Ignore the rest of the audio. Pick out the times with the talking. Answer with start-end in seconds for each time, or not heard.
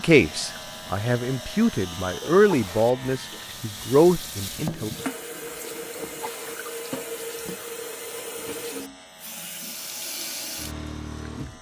0.0-4.9.